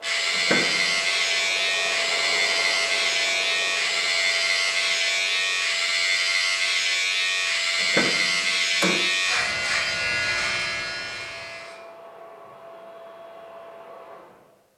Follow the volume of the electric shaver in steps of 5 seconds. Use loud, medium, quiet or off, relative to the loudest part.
loud, loud, medium.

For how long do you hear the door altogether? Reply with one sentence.
You can hear the door for 2 seconds altogether.